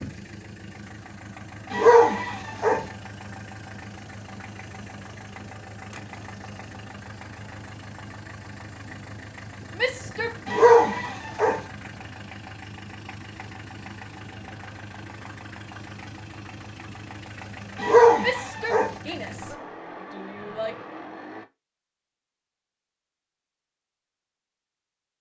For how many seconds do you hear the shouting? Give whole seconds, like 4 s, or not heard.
3 s.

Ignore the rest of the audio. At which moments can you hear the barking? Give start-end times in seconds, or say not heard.
1.7-2.9, 10.4-11.6, 17.8-18.9.